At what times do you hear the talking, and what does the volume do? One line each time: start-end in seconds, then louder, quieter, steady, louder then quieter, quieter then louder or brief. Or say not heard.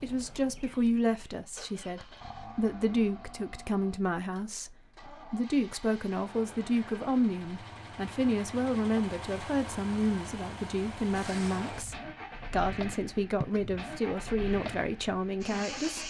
0.0-16.0 steady.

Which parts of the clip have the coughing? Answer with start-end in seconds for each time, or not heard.
13.3-13.8.